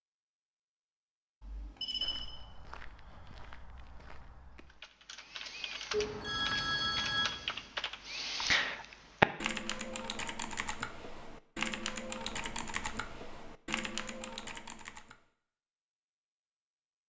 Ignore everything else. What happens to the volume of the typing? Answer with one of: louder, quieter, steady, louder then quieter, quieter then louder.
louder then quieter.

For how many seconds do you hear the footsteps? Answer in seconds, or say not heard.
3 s.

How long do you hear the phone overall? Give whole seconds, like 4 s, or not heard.
3 s.